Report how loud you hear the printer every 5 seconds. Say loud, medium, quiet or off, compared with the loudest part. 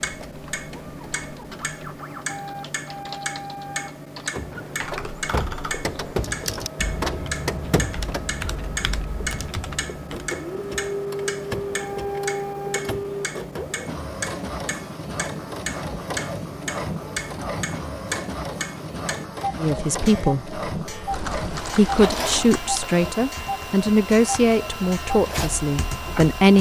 medium, loud, loud, loud, loud, loud.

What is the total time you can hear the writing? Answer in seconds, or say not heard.
not heard.